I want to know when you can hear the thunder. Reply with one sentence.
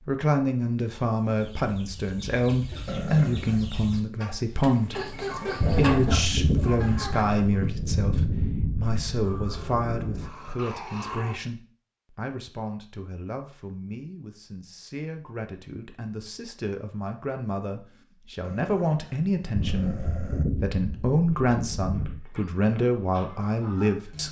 The thunder can be heard from 5.6 to 10.3 s and from 19.6 to 22.2 s.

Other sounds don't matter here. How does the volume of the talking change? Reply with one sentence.
The loudness of the talking goes down, then up.